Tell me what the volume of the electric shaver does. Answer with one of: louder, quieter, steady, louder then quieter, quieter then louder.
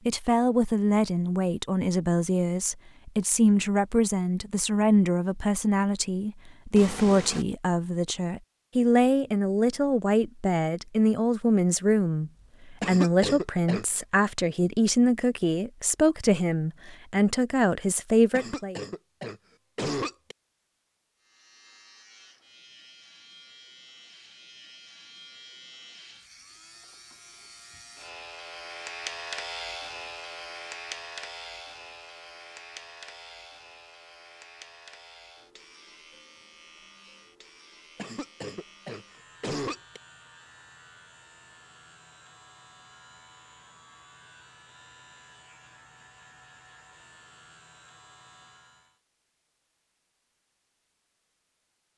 louder then quieter.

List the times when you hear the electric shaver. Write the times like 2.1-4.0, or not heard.
21.2-49.0.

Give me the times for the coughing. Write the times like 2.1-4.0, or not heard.
12.8-13.8, 18.3-20.4, 38.0-40.0.